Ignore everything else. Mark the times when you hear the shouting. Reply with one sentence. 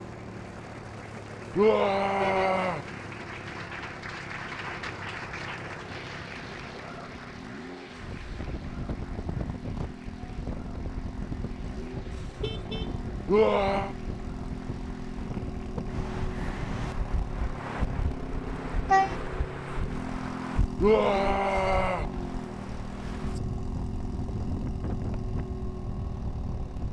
You can hear the shouting from 1.6 to 2.9 s, from 13.2 to 13.9 s and from 20.8 to 22.1 s.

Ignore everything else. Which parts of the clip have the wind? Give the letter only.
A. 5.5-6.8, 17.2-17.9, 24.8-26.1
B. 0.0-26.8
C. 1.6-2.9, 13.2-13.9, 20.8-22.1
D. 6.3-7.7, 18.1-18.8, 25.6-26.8
B.